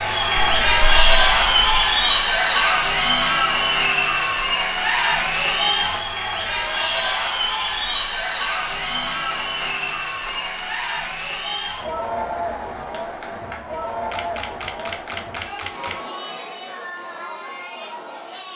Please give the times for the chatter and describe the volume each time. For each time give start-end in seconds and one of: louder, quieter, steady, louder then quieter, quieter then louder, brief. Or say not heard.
0.0-18.5 quieter.